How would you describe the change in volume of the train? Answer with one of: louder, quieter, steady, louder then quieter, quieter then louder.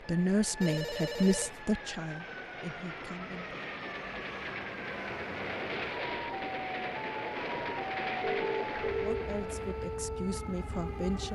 louder.